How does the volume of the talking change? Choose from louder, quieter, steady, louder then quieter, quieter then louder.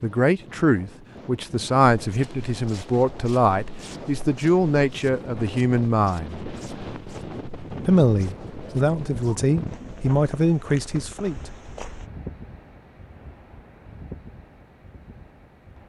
steady.